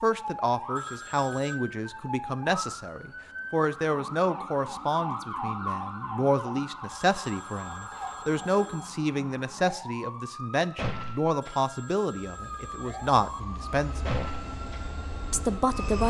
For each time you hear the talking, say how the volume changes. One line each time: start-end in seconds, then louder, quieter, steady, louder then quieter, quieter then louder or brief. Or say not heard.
0.0-14.3 steady
15.3-16.0 brief.